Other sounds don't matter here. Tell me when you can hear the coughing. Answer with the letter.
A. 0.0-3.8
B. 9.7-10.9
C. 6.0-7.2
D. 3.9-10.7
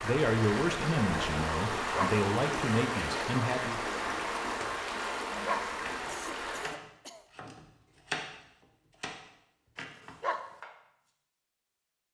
C.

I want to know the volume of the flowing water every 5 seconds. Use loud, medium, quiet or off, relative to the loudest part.
loud, loud, off.